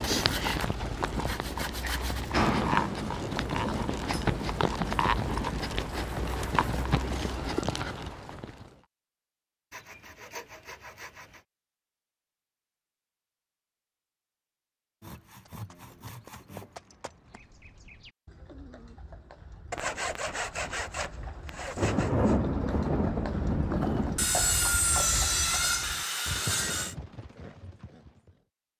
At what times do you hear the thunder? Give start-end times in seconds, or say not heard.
3.1-5.8, 21.8-24.3.